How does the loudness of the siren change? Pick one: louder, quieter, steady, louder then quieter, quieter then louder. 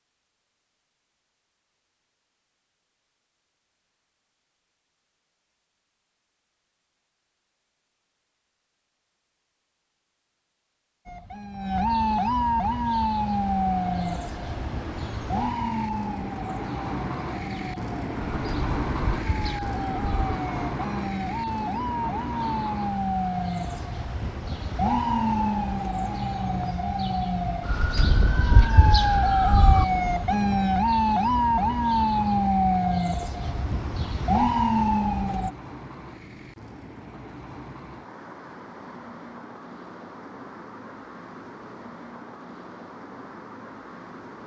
quieter then louder.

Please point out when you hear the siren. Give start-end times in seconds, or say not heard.
11.1-35.5.